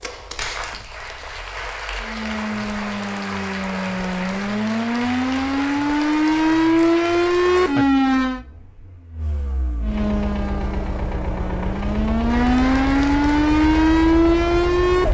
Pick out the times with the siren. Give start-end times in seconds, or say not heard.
2.0-8.4, 9.8-15.1.